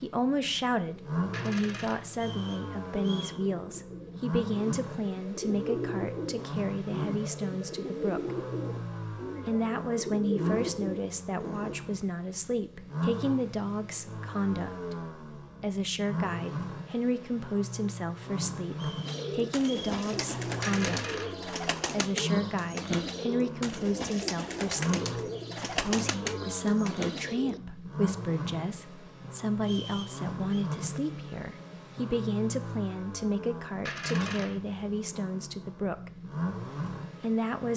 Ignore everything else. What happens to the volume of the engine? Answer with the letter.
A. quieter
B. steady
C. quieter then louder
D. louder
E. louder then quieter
B.